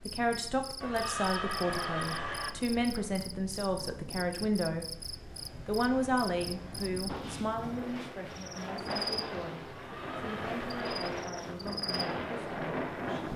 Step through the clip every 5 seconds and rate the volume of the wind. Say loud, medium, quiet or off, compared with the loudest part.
quiet, medium, loud.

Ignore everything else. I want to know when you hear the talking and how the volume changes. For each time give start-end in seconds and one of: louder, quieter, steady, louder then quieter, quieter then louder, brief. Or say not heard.
0.0-13.3 quieter.